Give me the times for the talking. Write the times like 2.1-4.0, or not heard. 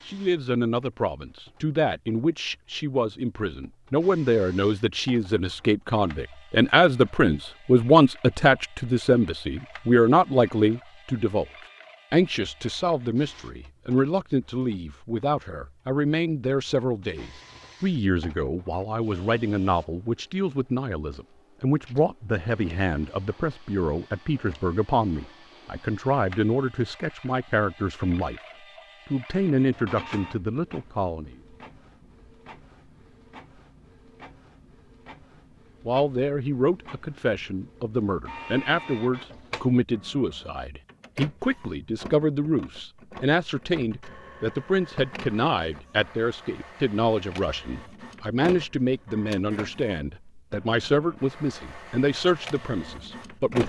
0.1-11.4, 12.1-28.4, 29.1-31.4, 35.9-53.6.